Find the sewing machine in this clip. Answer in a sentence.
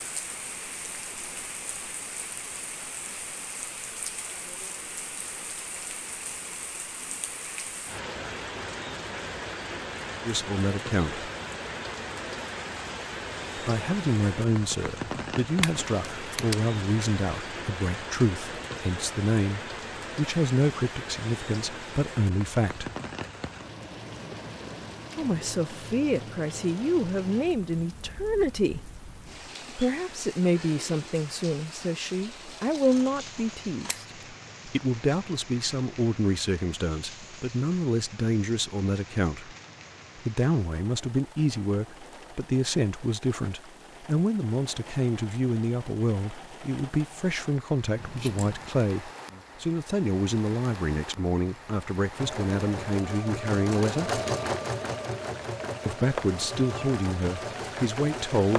The sewing machine can be heard from 52.1 to 58.5 s.